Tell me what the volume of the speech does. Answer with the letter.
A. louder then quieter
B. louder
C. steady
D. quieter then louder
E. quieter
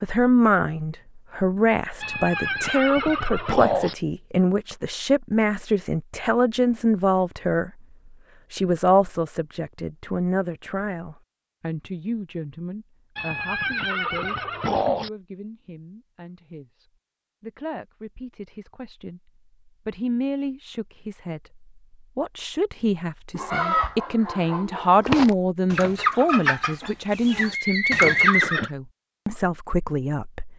D.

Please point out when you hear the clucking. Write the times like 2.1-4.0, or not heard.
23.4-28.6.